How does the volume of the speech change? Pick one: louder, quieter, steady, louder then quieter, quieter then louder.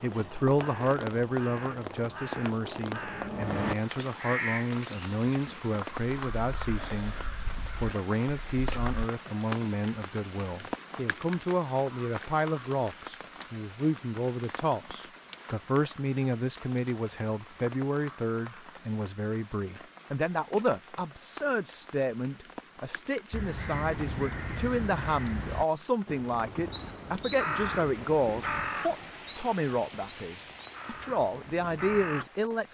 steady.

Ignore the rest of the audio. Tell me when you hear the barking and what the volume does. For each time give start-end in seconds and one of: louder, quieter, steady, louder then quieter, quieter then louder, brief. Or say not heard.
not heard.